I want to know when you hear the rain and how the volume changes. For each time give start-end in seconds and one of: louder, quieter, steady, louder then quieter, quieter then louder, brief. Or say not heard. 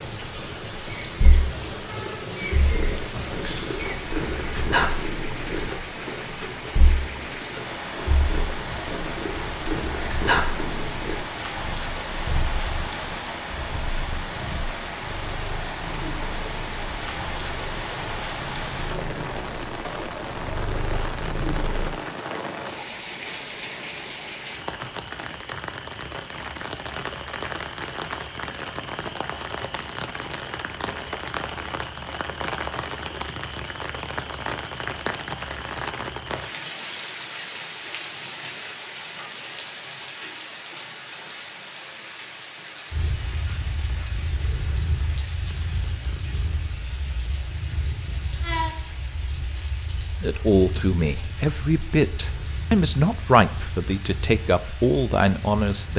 0.0-55.9 quieter.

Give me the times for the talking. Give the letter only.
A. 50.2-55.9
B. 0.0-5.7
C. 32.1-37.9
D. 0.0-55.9
A.